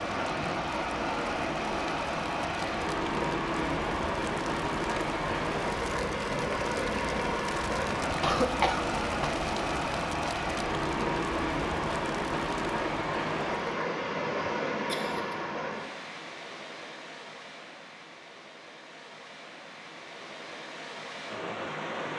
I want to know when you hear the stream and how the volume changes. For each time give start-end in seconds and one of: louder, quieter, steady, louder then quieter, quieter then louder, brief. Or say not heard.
0.0-22.1 quieter.